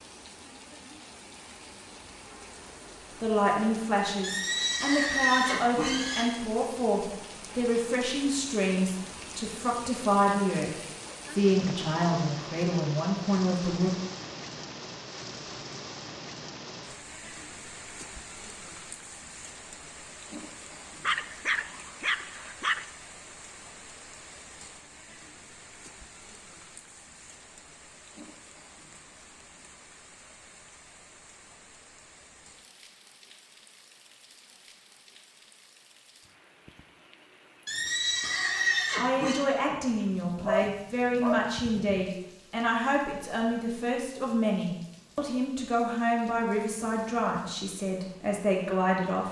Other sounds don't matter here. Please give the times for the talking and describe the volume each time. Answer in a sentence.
You can hear the talking from 3.2 to 13.9 s, at a steady volume; and from 39.0 to 49.2 s, at a steady volume.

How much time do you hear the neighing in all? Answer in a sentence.
The neighing can be heard for 4 seconds in total.